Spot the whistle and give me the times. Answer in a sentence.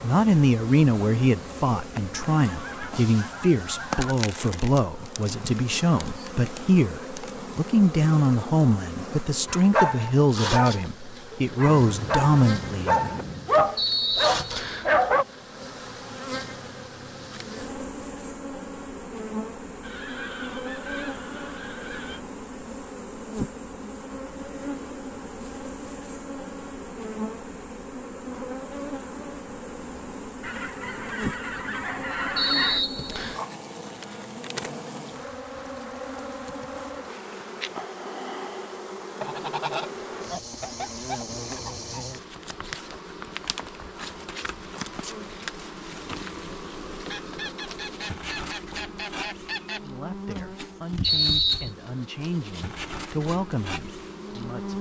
The whistle can be heard from 13.8 to 14.9 s, from 32.4 to 33.4 s and from 51.0 to 51.7 s.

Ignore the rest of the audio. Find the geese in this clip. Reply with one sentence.
You can hear the geese from 2.3 to 4.2 s, from 11.7 to 13.6 s, from 19.8 to 22.2 s, from 30.4 to 32.9 s, from 39.2 to 42.0 s and from 47.1 to 49.8 s.